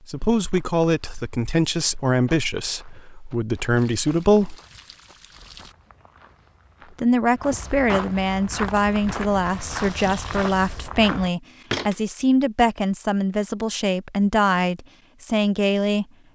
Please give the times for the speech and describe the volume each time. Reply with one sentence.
You can hear the speech from 0.1 to 4.5 s, getting quieter then louder; and from 7.0 to 16.1 s, at a steady volume.